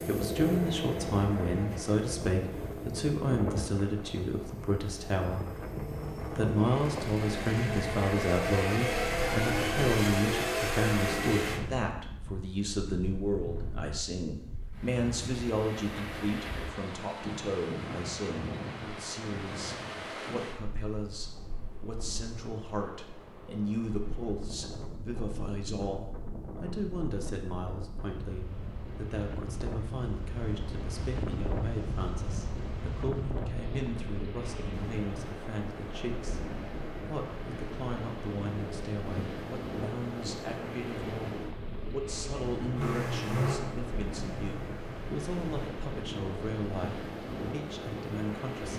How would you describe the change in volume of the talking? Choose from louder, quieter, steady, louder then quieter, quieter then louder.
quieter.